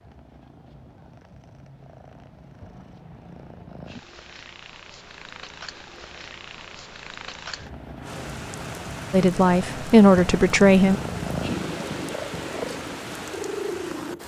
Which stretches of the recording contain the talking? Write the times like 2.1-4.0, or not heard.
9.1-11.0.